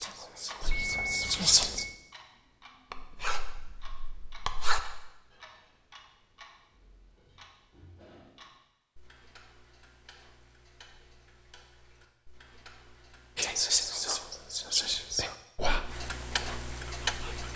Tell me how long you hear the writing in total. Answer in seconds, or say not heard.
2 s.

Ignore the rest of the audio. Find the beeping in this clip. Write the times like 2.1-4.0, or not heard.
0.6-1.9.